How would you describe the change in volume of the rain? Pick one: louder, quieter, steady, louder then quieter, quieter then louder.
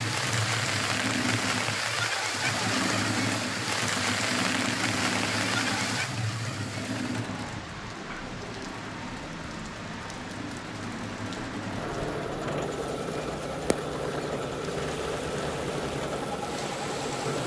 quieter.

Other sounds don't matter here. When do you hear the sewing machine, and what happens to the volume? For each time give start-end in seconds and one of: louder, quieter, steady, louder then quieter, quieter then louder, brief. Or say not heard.
0.0-17.4 quieter then louder.